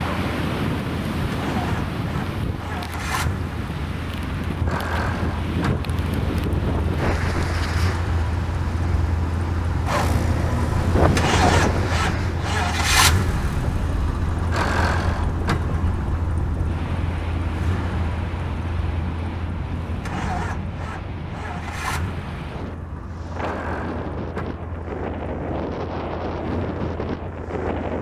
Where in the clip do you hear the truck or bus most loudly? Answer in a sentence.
The volume of the truck or bus peaks at 13 seconds.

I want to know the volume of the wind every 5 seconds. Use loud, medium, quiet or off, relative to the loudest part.
loud, loud, loud, medium, medium, loud.